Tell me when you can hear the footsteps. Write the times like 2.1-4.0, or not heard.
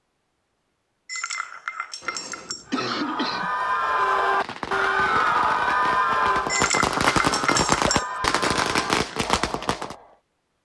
not heard.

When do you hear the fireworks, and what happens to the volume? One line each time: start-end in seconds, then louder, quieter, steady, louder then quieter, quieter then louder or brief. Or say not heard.
4.2-9.9 louder.